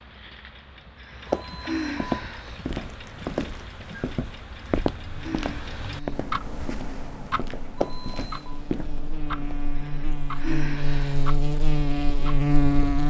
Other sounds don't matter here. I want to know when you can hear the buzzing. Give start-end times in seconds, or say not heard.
5.0-13.0.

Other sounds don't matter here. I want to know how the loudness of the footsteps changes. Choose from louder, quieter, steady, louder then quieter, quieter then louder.
quieter then louder.